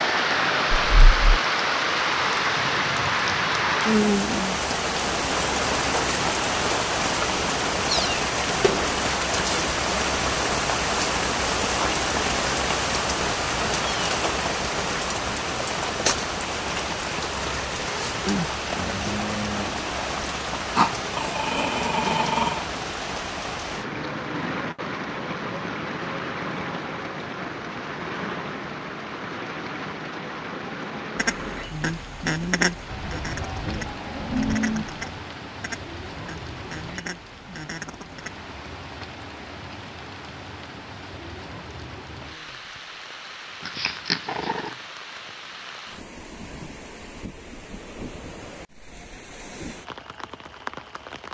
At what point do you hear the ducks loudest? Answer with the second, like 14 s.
33 s.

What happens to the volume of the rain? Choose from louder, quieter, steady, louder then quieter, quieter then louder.
quieter.